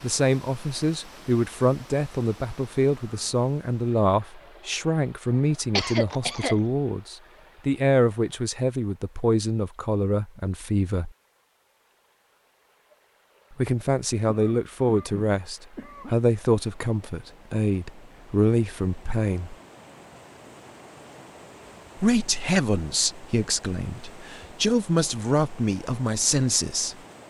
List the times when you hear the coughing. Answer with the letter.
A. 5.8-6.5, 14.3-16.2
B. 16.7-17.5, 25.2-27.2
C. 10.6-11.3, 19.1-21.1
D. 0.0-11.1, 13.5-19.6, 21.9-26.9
A.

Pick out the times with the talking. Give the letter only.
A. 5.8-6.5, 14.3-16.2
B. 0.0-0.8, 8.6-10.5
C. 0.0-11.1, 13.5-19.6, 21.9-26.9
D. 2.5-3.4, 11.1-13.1
C.